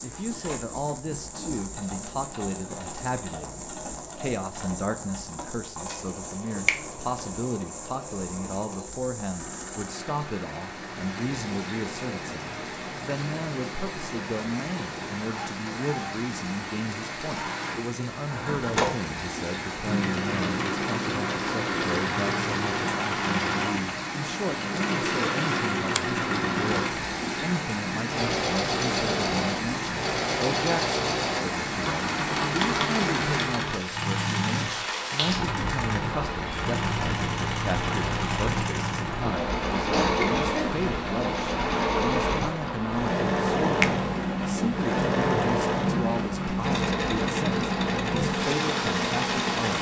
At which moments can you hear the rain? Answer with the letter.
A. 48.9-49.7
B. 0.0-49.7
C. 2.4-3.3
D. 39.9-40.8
B.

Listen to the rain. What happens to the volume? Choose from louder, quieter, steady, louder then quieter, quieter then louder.
louder.